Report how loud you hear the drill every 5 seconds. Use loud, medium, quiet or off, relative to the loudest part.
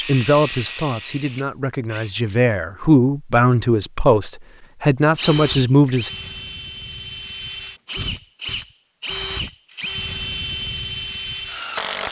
medium, loud, loud.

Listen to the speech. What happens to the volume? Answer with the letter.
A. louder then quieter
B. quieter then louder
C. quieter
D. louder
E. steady
D.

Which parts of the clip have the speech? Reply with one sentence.
You can hear the speech from 0.0 to 6.1 s.